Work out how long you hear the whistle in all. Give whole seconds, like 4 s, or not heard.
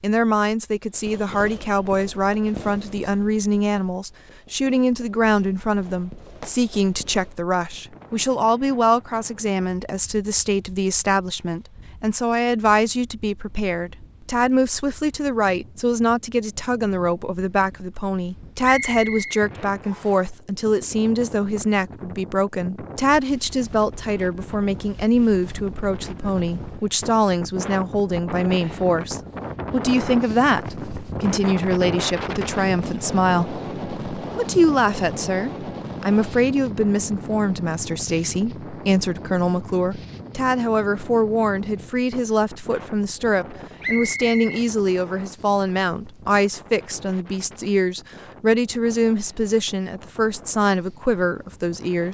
3 s.